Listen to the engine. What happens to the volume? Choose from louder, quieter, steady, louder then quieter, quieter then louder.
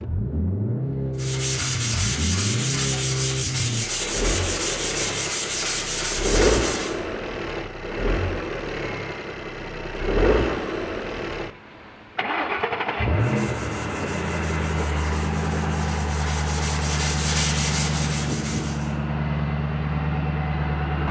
steady.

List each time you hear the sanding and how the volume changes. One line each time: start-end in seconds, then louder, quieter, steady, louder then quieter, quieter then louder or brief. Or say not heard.
1.1-7.0 steady
13.2-18.9 louder.